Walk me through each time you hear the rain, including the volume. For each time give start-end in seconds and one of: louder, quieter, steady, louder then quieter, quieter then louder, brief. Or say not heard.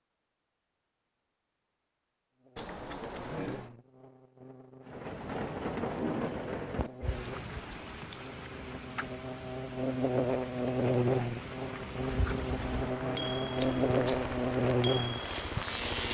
4.8-16.0 quieter then louder.